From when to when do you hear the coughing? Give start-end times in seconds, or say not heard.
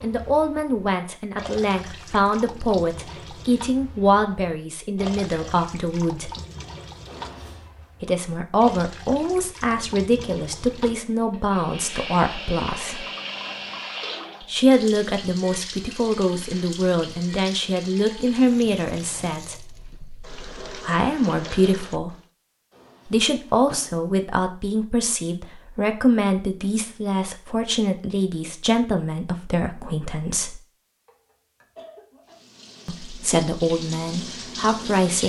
31.1-32.4.